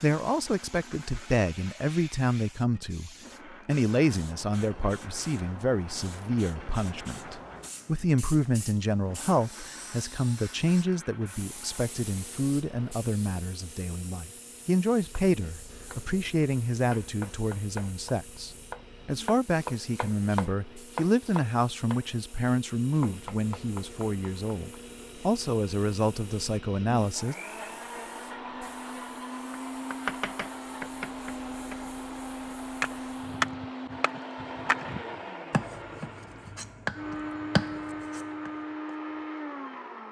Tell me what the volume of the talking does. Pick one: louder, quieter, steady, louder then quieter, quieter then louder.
steady.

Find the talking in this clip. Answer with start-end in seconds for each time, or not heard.
0.0-27.4.